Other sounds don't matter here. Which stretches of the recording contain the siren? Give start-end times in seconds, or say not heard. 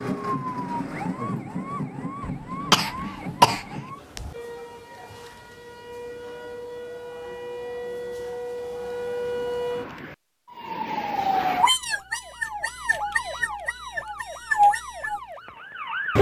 0.0-16.1.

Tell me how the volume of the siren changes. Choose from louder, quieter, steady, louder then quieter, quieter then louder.
quieter then louder.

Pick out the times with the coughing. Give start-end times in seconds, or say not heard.
2.2-3.8.